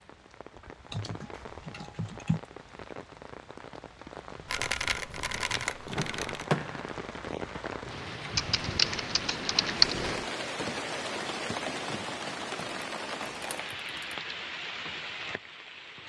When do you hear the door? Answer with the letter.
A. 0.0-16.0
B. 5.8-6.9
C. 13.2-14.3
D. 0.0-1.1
B.